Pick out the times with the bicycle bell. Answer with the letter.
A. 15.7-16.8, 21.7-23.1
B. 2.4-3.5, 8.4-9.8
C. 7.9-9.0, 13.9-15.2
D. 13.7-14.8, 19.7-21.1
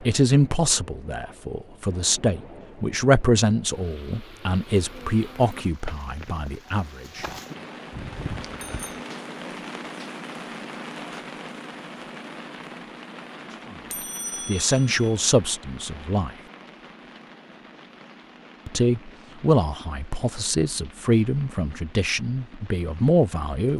C.